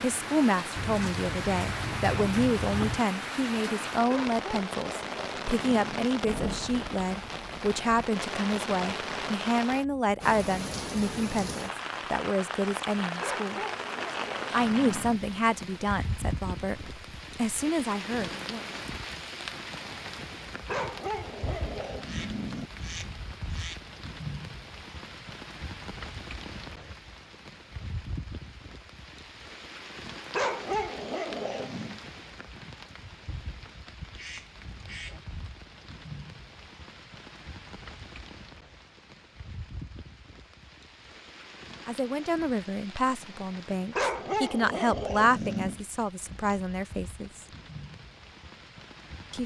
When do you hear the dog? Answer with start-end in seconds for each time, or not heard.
4.0-6.0, 13.2-15.2, 20.6-22.7, 30.3-32.0, 43.9-45.8.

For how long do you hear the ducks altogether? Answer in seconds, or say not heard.
5 s.